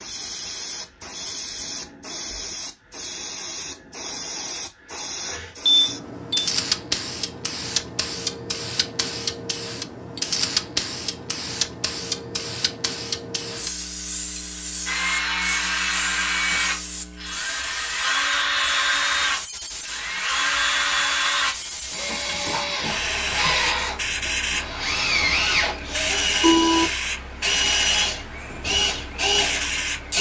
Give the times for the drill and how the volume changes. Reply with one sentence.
The drill can be heard from 14.8 to 30.1 s, at a steady volume.